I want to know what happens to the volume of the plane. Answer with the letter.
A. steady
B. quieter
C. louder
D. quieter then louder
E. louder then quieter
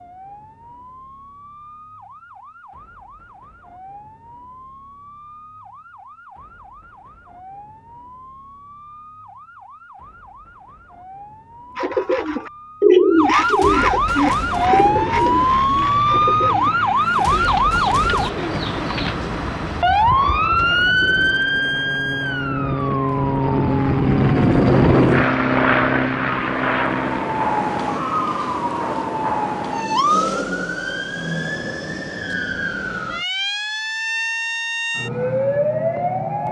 C.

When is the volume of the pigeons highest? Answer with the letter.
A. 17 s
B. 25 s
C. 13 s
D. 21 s
C.